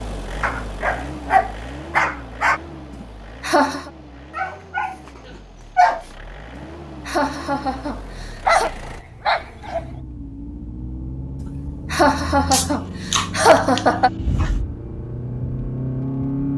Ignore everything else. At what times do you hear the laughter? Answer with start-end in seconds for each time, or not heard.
2.9-3.9, 6.5-8.7, 11.4-14.1.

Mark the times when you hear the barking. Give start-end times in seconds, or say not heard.
0.4-2.6, 4.3-6.0, 8.4-9.8, 12.5-14.5.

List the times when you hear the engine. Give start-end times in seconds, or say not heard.
0.0-16.5.